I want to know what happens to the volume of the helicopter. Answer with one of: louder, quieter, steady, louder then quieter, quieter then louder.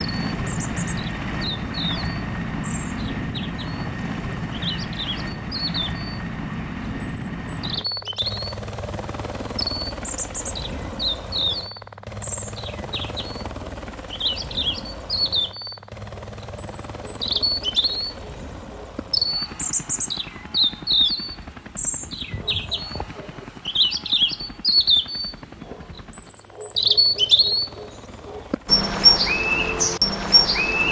quieter.